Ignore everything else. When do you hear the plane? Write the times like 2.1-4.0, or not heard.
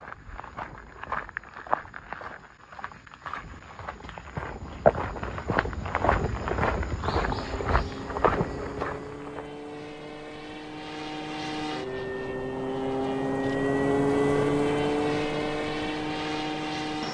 7.2-17.0.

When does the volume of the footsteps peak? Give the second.
5 s.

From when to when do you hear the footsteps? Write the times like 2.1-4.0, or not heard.
0.0-9.5.